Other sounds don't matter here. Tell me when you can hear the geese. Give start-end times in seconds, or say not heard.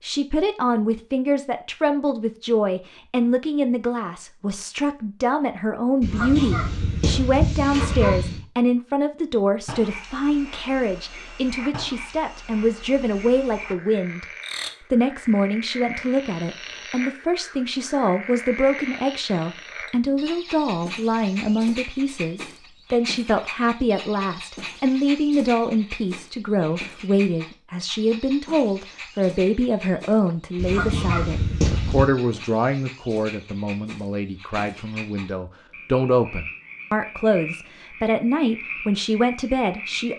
6.0-8.4, 30.6-32.1.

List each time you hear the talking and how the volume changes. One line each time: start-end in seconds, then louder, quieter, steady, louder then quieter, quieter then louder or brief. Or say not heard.
0.0-14.2 steady
14.9-40.1 steady.